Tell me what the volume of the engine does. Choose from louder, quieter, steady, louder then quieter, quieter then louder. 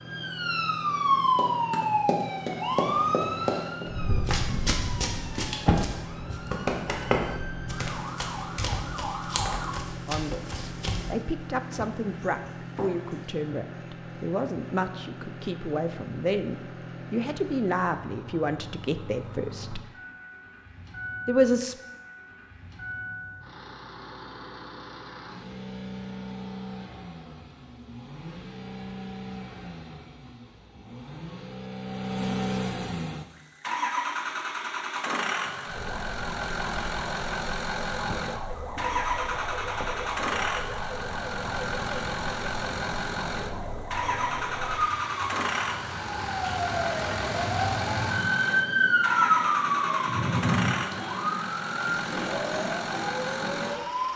louder.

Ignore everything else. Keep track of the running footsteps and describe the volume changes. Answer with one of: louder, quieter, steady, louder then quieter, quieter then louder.
quieter.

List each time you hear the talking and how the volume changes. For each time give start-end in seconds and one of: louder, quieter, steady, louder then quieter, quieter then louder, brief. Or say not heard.
10.1-19.8 steady
21.2-21.8 brief.